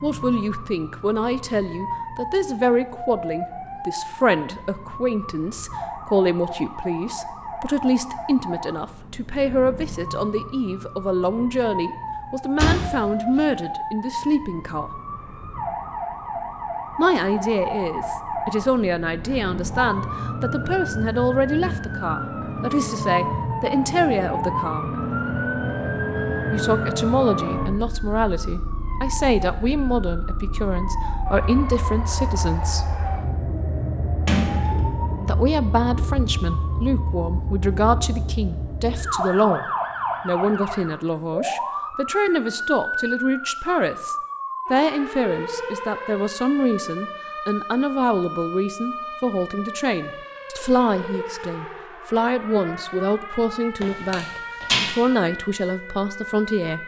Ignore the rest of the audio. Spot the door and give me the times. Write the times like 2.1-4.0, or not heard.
12.6-13.4, 34.2-35.5, 53.8-54.9.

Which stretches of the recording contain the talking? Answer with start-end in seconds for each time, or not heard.
0.0-15.0, 16.9-24.9, 26.5-32.9, 35.2-56.8.